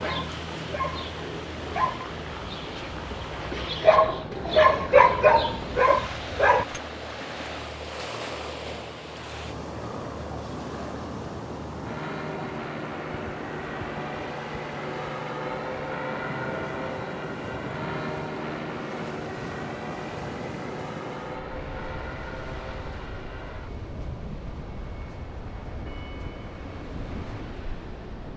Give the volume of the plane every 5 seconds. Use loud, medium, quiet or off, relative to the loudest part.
medium, medium, loud, loud, medium, medium.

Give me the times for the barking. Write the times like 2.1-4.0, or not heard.
0.0-6.8.